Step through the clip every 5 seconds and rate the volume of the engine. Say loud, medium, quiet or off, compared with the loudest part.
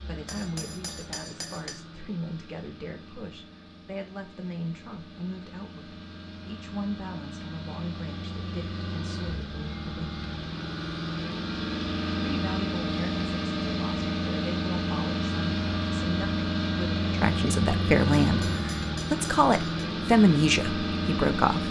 quiet, medium, loud, loud, loud.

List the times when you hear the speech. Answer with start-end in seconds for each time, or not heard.
0.1-10.2, 12.3-21.6.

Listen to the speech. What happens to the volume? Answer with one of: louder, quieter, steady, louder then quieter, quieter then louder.
louder.